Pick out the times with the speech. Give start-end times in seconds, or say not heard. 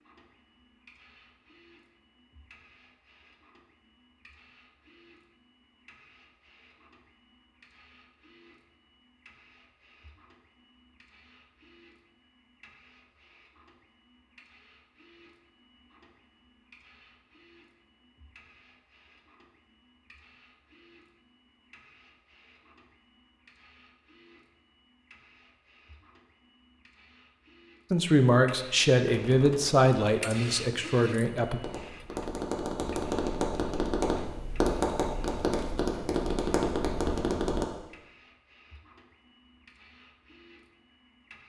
27.9-31.6.